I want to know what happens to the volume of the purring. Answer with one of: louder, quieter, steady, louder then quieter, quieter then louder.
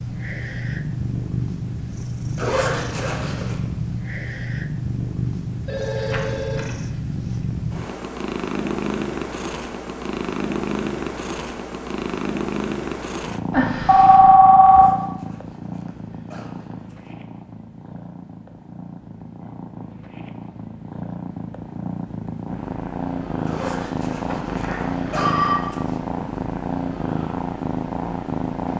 quieter then louder.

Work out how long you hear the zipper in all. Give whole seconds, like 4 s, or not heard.
6 s.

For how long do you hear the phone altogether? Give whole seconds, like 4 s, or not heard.
4 s.